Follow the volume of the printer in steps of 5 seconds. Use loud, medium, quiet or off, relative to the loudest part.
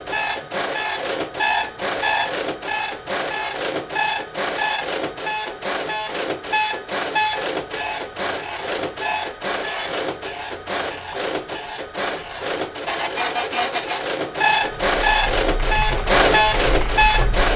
medium, medium, medium, loud.